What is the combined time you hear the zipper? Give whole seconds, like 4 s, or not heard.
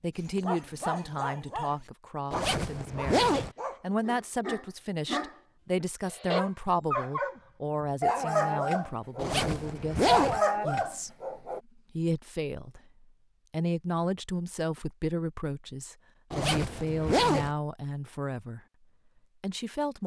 4 s.